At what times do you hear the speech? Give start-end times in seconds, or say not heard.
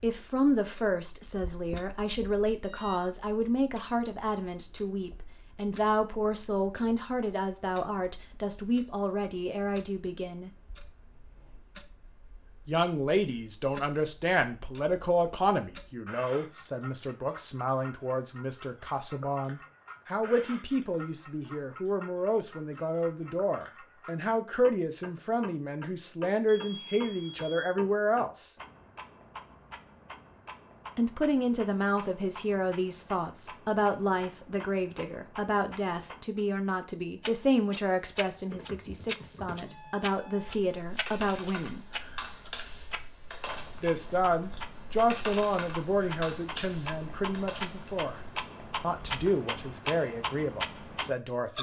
0.0-10.5, 12.7-28.5, 30.9-41.9, 43.8-48.2, 48.8-51.5.